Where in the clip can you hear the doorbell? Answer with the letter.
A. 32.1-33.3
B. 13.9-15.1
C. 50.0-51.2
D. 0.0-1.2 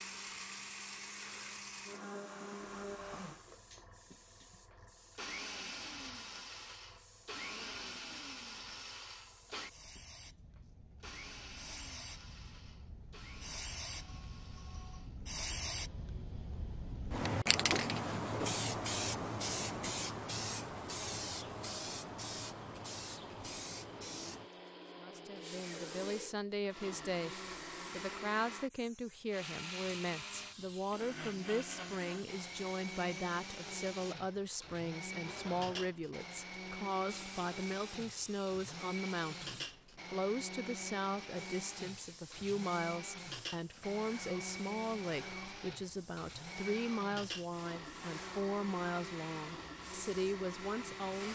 B.